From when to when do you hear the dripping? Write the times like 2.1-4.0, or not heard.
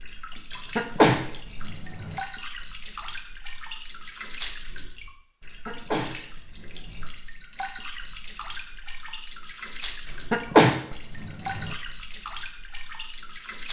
0.0-13.6.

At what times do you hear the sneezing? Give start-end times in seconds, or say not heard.
0.8-2.1, 5.7-7.0, 10.3-11.7.